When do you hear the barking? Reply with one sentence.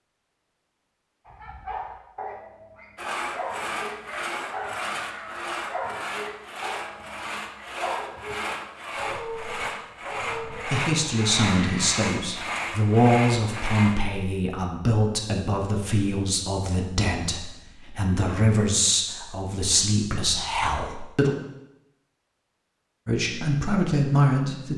You can hear the barking from 1.2 to 11.9 s.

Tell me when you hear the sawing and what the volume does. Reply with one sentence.
You can hear the sawing from 3.0 to 14.1 s, at a steady volume.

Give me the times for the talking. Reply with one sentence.
The talking can be heard from 10.5 to 21.3 s and from 23.1 to 24.7 s.